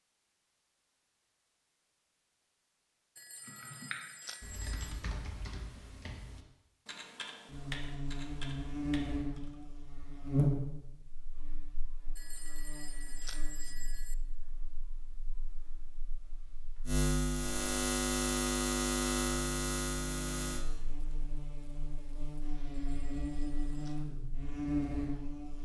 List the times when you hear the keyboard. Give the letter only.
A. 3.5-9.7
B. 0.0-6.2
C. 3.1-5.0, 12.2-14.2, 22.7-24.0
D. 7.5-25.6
A.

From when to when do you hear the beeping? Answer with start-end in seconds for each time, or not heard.
3.1-5.0, 12.2-14.2, 22.7-24.0.